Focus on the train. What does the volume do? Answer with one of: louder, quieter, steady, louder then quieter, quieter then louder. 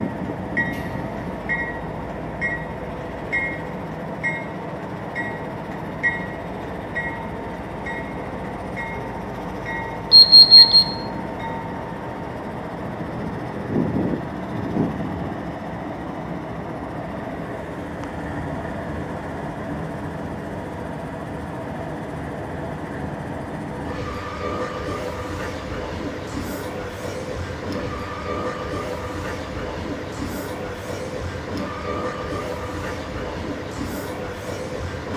steady.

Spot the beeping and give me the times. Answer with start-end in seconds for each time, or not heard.
10.1-10.8.